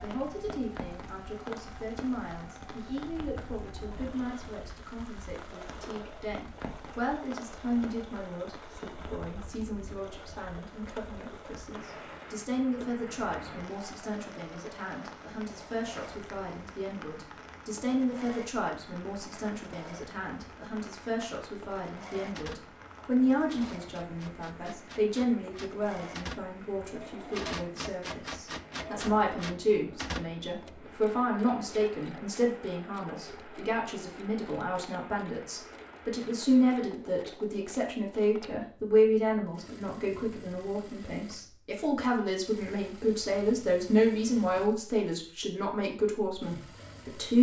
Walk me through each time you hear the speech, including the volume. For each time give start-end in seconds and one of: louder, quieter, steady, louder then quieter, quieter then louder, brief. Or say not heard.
0.0-47.3 louder.